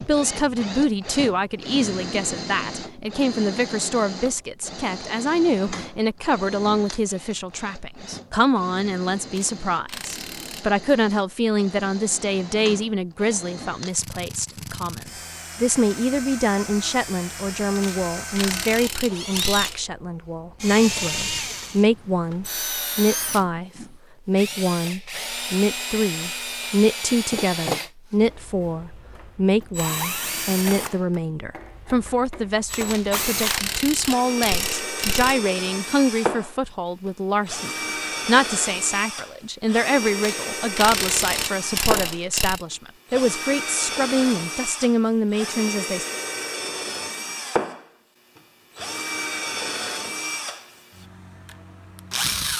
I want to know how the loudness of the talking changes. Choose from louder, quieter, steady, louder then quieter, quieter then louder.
steady.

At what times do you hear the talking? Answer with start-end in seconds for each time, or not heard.
0.0-46.0.